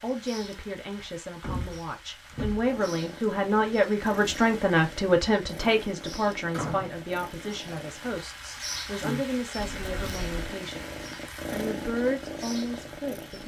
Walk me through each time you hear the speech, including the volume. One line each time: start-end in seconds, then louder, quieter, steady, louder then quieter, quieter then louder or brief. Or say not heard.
0.0-10.9 louder then quieter
11.5-13.4 brief.